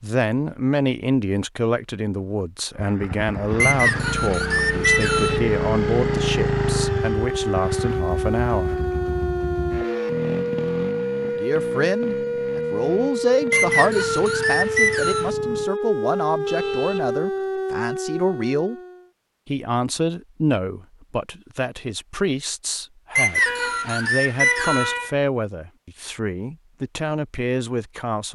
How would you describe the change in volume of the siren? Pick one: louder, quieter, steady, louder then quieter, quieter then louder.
steady.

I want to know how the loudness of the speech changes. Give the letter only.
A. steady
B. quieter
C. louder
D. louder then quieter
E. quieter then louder
A.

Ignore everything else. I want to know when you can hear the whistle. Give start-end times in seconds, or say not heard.
3.6-5.4, 13.5-15.3, 23.1-24.9.